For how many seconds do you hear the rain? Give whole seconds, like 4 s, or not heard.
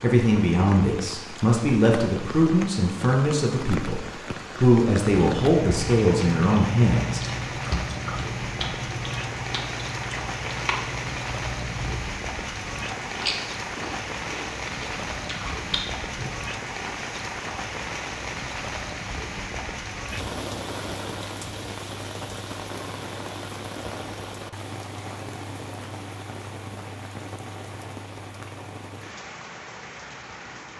31 s.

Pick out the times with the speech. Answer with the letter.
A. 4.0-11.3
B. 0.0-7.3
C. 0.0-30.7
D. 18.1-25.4
B.